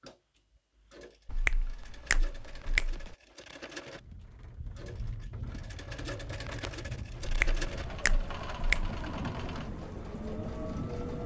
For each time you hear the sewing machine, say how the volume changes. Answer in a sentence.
The sewing machine can be heard from 0.0 to 11.2 s, getting louder.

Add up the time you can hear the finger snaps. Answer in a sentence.
The finger snaps can be heard for 4 seconds in total.